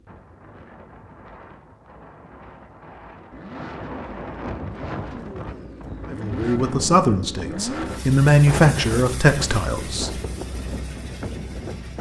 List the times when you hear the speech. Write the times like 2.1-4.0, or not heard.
6.1-10.1.